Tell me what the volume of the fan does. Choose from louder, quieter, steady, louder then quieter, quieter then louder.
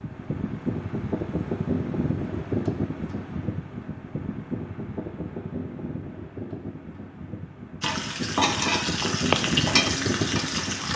quieter then louder.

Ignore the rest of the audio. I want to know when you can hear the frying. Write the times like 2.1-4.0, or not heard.
7.8-10.9.